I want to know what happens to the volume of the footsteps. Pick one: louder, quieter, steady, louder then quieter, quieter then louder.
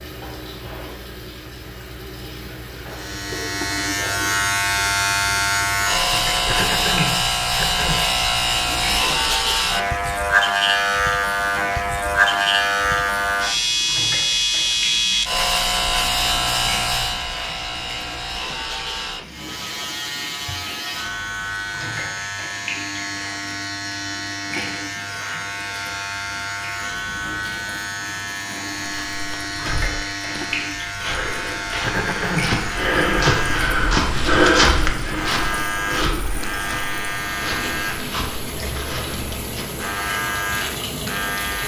louder then quieter.